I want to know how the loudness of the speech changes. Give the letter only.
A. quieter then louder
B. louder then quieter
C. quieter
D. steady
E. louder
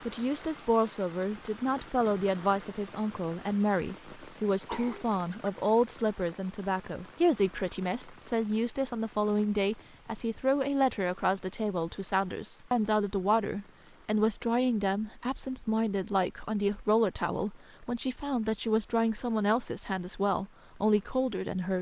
D.